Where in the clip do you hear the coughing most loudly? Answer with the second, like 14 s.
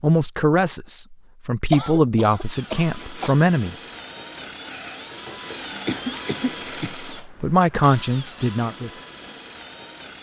2 s.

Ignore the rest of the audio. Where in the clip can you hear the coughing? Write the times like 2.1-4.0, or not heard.
1.7-3.4, 5.8-7.0.